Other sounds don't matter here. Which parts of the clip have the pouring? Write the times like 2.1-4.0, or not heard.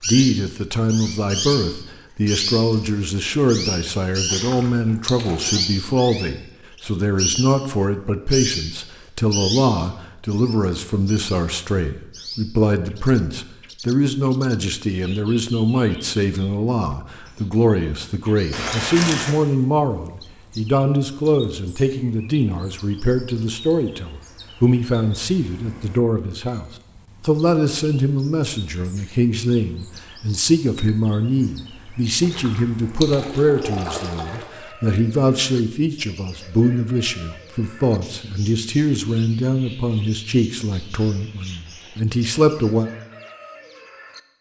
4.2-5.6, 18.5-19.4, 32.2-34.5.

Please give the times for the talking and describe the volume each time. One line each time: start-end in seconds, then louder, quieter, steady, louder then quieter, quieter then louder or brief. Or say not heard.
0.0-42.9 steady.